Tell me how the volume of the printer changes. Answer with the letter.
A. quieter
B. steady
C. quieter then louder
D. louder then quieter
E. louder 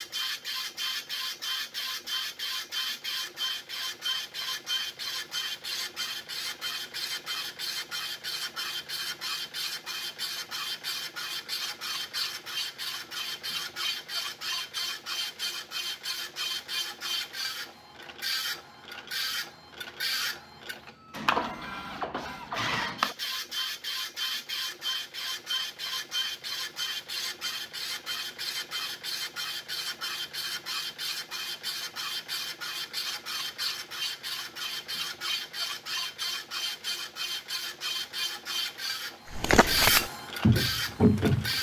B.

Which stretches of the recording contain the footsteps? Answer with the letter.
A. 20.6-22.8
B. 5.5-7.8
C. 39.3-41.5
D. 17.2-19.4
C.